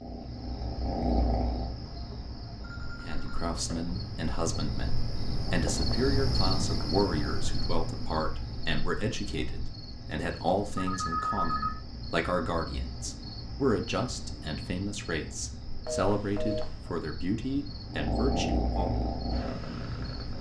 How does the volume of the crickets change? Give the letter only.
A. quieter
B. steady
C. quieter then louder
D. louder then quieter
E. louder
D.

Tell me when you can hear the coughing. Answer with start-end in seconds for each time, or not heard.
not heard.